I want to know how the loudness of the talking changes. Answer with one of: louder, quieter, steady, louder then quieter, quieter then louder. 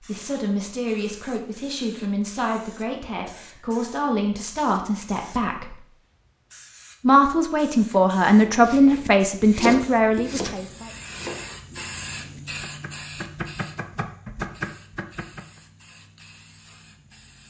louder.